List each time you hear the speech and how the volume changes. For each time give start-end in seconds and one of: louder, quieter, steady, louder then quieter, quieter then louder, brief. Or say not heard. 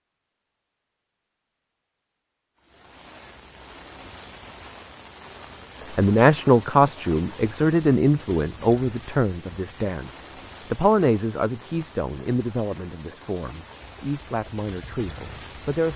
6.0-15.9 quieter.